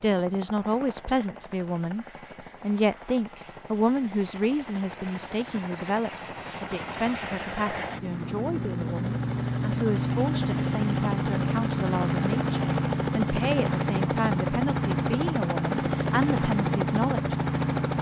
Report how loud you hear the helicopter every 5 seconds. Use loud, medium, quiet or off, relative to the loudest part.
quiet, medium, loud, loud.